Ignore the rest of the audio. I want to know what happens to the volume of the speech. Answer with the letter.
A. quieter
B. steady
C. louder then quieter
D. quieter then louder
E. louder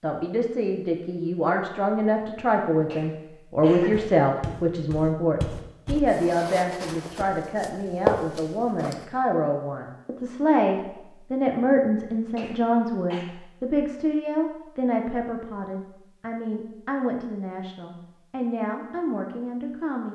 A.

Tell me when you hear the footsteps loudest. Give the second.
8 s.